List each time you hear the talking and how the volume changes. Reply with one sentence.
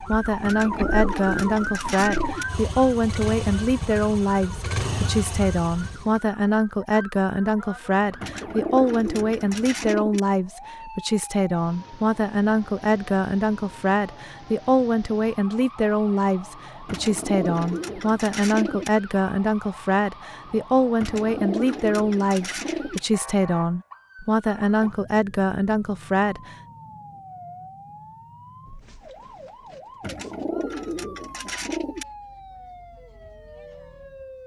You can hear the talking from 0.0 to 26.6 s, at a steady volume.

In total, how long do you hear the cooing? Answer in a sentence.
The cooing can be heard for 10 seconds in total.